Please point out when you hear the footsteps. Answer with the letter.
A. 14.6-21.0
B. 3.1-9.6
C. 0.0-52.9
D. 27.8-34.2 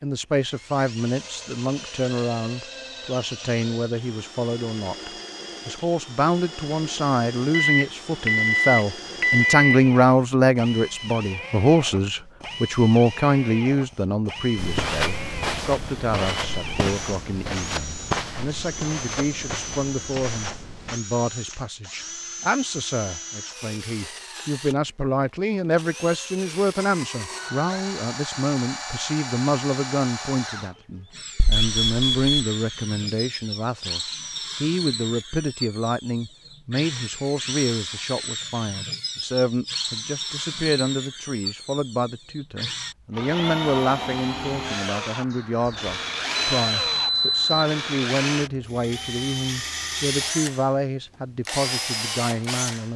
A.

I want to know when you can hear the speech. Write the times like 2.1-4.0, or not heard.
0.0-52.9.